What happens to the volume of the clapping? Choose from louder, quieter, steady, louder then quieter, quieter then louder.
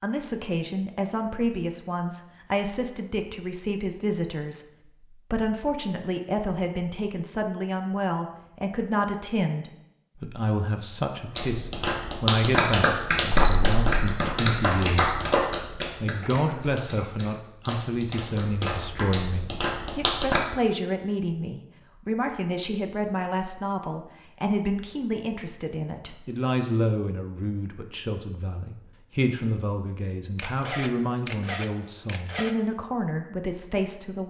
quieter then louder.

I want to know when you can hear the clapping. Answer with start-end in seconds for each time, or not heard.
11.3-20.4.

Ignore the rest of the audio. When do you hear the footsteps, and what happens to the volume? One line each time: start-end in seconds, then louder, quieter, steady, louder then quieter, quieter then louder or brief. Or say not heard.
not heard.